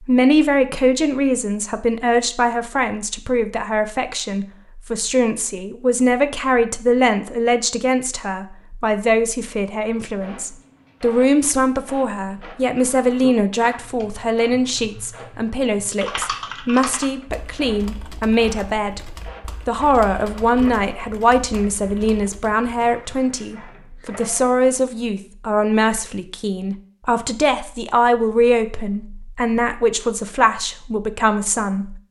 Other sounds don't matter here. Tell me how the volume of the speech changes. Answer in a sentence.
The loudness of the speech stays about the same.